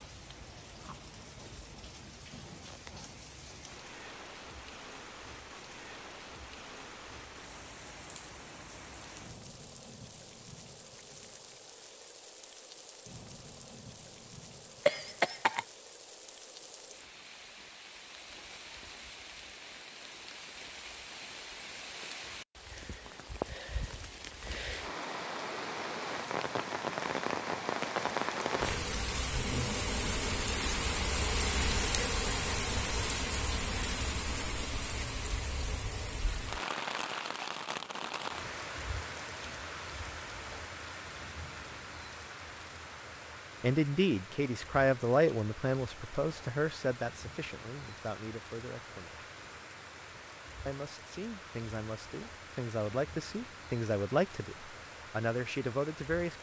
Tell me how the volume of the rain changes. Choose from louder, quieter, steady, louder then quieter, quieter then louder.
louder then quieter.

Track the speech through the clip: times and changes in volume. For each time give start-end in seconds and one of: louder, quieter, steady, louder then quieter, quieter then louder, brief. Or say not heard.
43.6-49.2 quieter
50.6-56.3 louder.